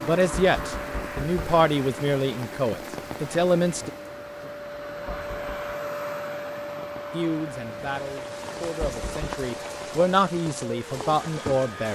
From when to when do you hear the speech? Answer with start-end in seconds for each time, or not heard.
0.0-3.9, 7.1-11.9.